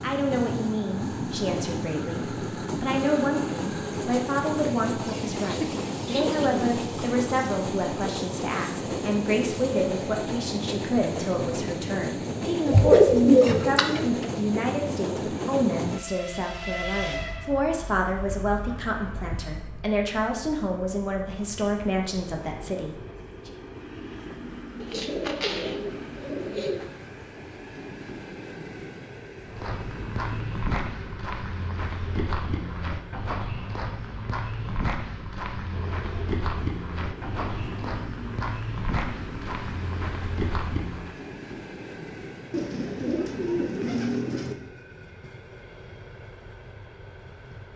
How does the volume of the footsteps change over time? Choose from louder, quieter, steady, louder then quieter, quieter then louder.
steady.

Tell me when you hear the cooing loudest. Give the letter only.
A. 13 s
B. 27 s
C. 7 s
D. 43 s
A.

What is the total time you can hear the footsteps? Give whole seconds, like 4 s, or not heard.
12 s.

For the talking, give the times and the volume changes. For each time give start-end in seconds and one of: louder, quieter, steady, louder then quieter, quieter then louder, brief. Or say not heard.
0.0-23.5 steady.